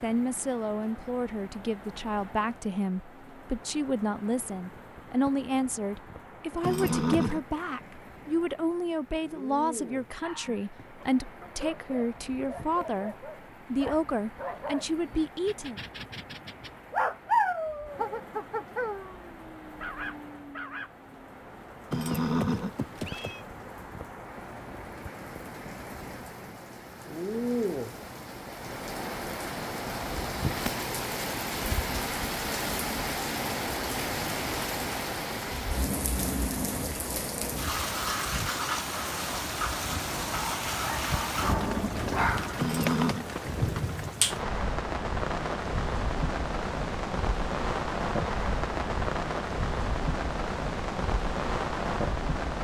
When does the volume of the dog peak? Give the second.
17 s.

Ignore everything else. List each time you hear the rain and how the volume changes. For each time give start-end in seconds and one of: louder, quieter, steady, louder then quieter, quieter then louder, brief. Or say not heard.
0.0-52.5 louder.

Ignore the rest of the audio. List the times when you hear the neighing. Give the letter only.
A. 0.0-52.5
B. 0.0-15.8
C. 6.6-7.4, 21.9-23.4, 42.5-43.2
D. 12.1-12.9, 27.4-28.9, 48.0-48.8
C.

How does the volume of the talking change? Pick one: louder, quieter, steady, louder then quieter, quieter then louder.
steady.